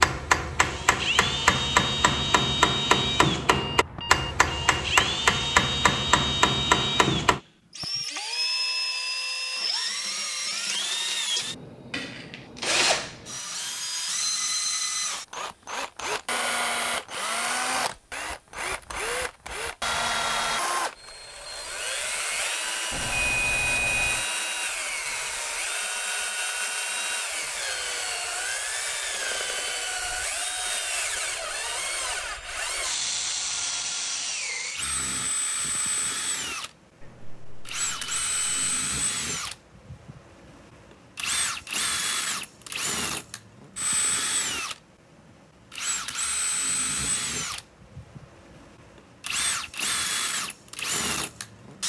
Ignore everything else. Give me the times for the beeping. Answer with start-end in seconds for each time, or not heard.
3.5-5.1, 22.9-24.2, 37.0-38.8.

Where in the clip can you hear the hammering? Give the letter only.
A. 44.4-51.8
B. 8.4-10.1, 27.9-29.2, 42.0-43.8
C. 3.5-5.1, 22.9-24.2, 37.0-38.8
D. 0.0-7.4
D.